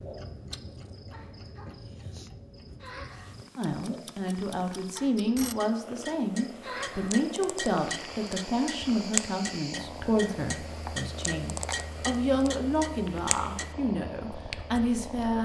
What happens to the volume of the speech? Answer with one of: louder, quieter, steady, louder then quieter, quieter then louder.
steady.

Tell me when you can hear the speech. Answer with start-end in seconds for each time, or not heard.
3.5-15.4.